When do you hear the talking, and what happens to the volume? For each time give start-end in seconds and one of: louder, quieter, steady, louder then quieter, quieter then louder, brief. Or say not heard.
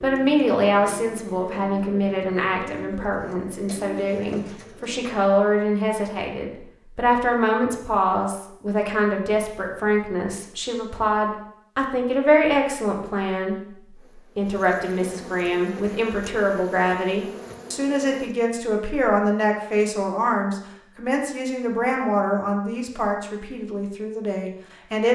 0.0-25.0 steady.